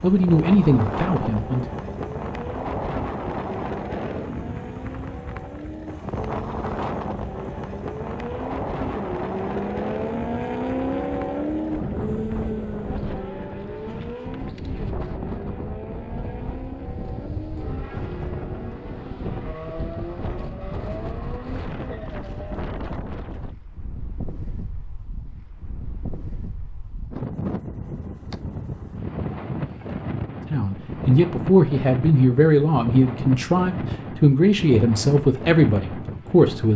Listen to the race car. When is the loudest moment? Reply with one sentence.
The loudest moment of the race car is at 11 seconds.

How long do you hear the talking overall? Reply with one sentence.
The talking can be heard for 8 seconds in total.